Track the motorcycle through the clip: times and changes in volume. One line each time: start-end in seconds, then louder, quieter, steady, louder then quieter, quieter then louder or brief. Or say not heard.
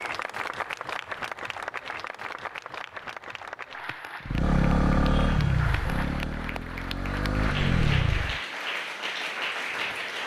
4.2-8.4 quieter then louder.